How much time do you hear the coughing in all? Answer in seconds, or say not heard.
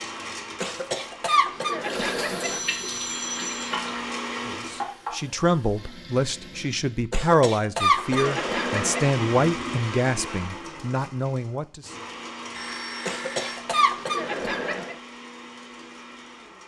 6 s.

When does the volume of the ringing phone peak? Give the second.
3 s.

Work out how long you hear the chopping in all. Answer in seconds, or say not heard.
not heard.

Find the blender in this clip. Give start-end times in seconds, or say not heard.
0.0-5.0, 7.8-16.6.